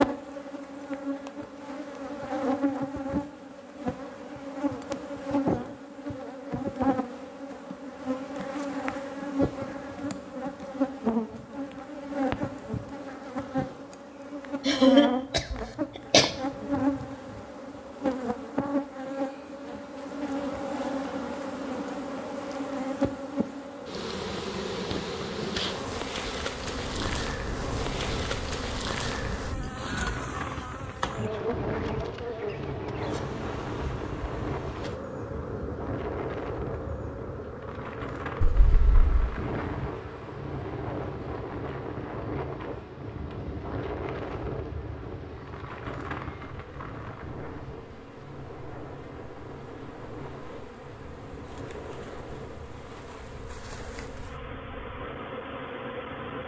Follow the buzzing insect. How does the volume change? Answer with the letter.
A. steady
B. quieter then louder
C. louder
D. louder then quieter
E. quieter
E.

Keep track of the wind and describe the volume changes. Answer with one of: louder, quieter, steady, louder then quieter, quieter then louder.
quieter.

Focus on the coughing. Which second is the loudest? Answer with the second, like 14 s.
15 s.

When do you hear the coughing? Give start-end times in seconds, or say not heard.
14.7-16.3, 38.4-39.1.